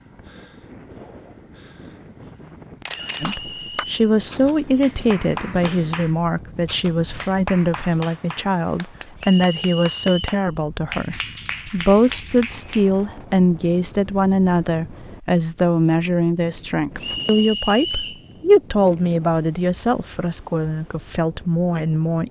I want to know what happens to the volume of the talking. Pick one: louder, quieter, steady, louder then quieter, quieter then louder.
steady.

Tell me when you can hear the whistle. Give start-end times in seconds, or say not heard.
3.1-4.0, 9.2-10.4, 17.0-18.2.